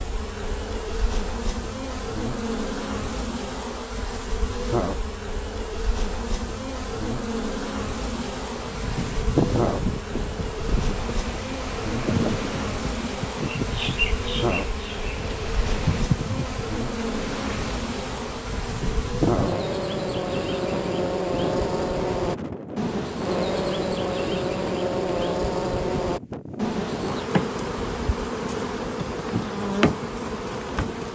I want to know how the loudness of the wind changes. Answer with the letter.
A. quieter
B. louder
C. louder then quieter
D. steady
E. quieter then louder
A.